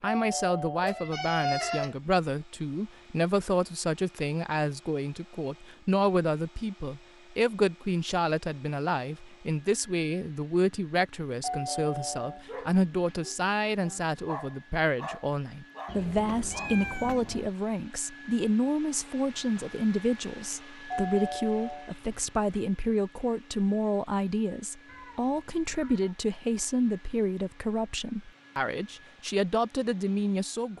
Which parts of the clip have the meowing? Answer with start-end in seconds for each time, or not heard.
0.8-1.9, 15.8-17.5, 24.9-26.1.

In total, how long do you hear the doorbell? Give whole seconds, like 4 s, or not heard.
5 s.